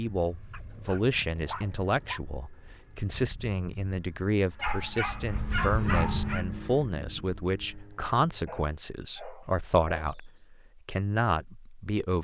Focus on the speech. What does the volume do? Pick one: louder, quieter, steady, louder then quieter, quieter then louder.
steady.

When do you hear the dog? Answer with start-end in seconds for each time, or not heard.
0.5-2.2, 4.5-6.5, 8.4-10.2.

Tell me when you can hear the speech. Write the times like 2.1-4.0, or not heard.
0.0-12.1.